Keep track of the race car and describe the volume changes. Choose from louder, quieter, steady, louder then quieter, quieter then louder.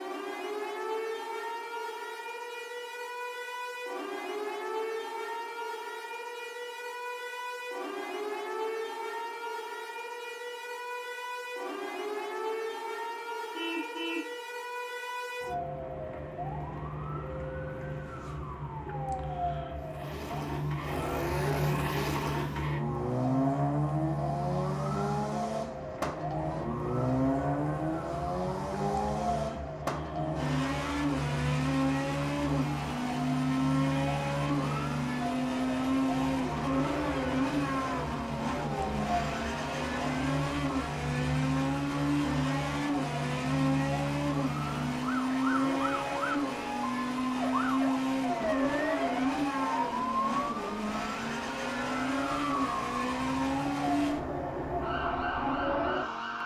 steady.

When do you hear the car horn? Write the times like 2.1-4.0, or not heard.
13.6-14.3.